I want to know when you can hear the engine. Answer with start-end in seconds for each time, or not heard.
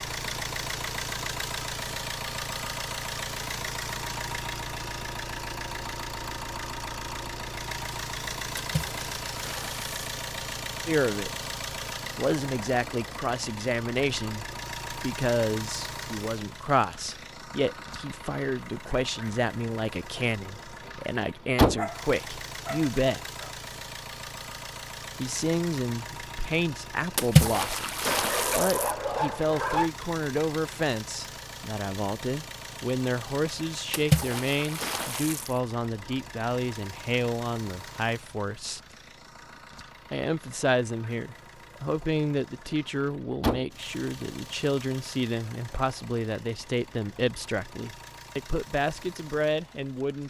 0.0-50.2.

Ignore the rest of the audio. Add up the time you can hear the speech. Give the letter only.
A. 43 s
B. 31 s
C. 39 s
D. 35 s
D.